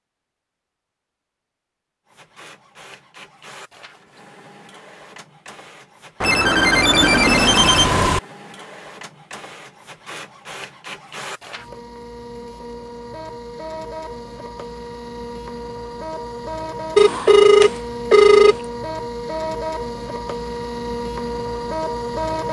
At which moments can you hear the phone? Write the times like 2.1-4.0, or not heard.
6.2-8.2, 16.9-18.6.